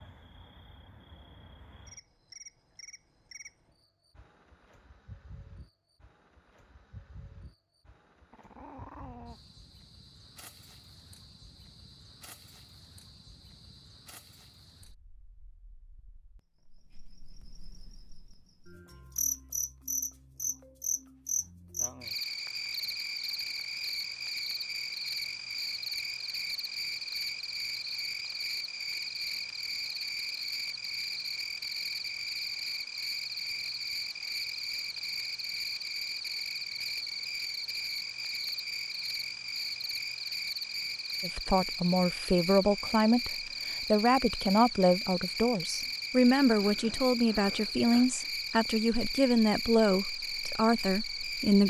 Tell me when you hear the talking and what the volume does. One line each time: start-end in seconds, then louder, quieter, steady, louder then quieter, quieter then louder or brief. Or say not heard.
41.2-51.6 steady.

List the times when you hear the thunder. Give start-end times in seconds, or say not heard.
not heard.